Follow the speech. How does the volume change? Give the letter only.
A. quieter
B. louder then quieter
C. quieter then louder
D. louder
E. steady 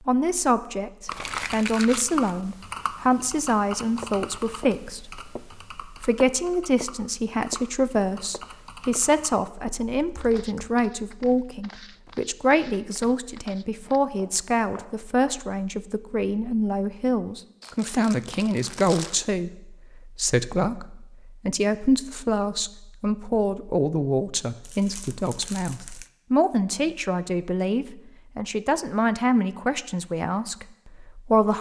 E.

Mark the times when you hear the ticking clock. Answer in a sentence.
The ticking clock can't be heard in this clip.